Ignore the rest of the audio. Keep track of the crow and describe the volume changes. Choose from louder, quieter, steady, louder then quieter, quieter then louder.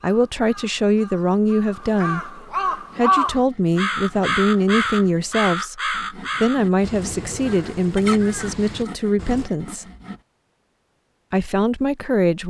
louder then quieter.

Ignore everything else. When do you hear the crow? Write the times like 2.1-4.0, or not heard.
0.0-9.5.